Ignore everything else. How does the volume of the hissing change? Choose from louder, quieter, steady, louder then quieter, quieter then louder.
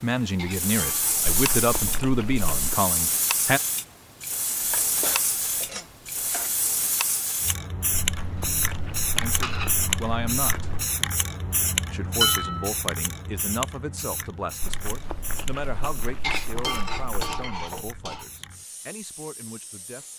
quieter.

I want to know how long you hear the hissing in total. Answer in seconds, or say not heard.
20 s.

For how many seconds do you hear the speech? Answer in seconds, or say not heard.
13 s.